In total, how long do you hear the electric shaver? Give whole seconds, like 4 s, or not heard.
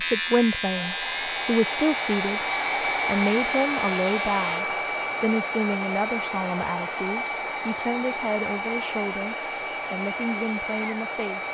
5 s.